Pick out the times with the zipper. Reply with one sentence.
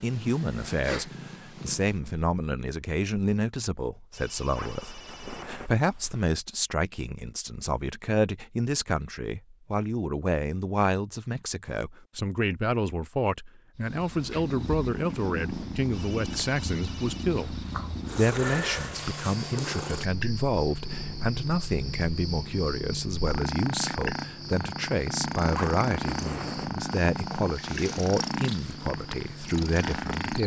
The zipper can be heard from 4.5 to 5.7 s and from 25.5 to 26.8 s.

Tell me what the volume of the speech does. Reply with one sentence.
The volume of the speech stays about the same.